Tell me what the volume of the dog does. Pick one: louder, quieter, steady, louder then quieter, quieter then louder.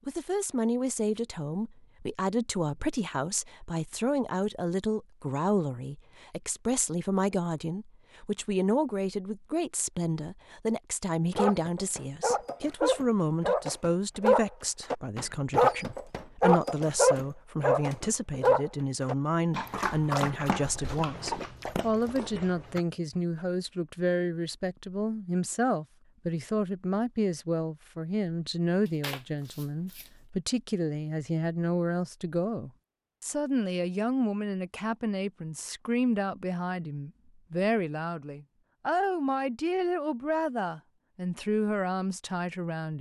louder then quieter.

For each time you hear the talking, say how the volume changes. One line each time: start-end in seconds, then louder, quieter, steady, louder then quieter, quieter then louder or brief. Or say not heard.
0.1-42.9 steady.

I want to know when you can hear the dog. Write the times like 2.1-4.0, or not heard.
11.3-22.8.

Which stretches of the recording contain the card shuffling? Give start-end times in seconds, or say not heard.
28.9-30.1.